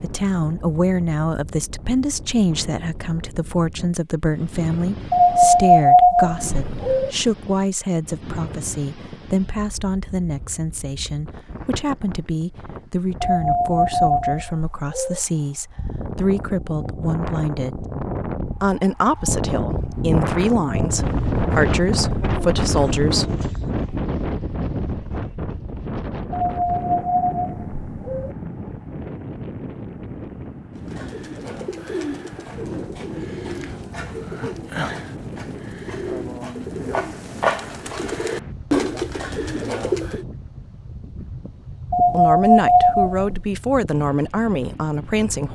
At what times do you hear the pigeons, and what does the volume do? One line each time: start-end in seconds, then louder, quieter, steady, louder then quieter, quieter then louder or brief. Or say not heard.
30.8-40.2 louder.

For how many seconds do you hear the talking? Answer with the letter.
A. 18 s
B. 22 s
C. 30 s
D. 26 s
D.